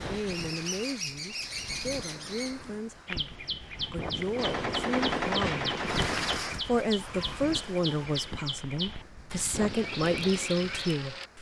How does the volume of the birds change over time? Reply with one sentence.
The loudness of the birds stays about the same.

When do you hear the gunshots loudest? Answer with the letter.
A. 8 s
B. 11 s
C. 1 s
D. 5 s
D.